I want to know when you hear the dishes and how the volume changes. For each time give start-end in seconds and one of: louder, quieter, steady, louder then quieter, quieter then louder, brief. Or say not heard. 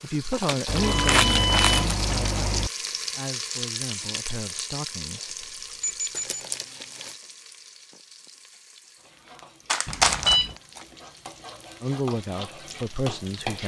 not heard.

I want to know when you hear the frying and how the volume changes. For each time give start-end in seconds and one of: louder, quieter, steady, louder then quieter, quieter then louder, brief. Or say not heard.
0.0-13.6 quieter then louder.